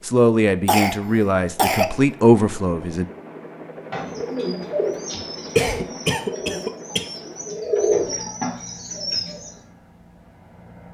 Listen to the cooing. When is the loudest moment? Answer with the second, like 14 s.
8 s.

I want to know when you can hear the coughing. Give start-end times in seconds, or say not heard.
0.7-1.9, 5.5-7.0.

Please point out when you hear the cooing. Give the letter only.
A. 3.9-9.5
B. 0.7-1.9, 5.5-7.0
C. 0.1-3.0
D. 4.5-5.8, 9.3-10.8
A.